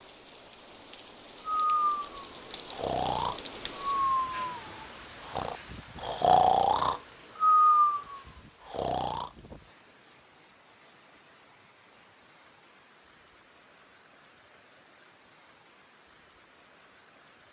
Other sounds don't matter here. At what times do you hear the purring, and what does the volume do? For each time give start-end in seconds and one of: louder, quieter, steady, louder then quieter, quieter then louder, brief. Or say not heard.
not heard.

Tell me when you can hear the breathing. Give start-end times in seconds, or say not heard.
1.5-9.3.